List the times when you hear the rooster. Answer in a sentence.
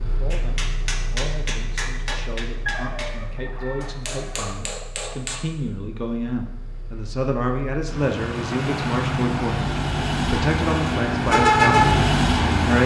The rooster can be heard from 2.6 to 4.5 s.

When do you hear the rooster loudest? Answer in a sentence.
The volume of the rooster peaks at 3 seconds.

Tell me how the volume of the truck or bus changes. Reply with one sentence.
The loudness of the truck or bus goes down, then up.